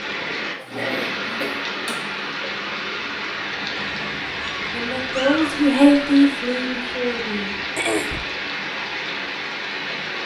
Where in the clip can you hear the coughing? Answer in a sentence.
The coughing can be heard from 0.6 to 2.6 s and from 7.8 to 8.2 s.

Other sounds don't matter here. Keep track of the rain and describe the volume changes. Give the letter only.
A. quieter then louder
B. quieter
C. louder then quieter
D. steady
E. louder
D.